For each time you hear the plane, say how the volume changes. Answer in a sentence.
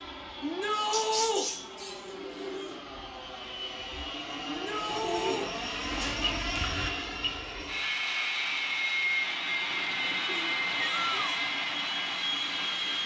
The plane can be heard from 0.0 to 13.0 s, getting louder.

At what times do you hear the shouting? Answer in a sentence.
The shouting can be heard from 0.4 to 1.4 s, from 4.5 to 5.5 s and from 10.8 to 11.4 s.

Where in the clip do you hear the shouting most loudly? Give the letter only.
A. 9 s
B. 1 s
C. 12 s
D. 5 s
B.